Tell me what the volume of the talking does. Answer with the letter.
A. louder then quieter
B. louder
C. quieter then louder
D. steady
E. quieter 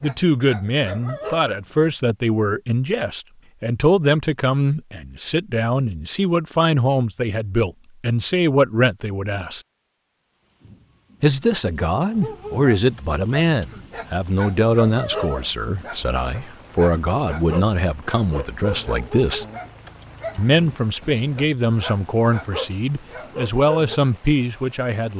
D.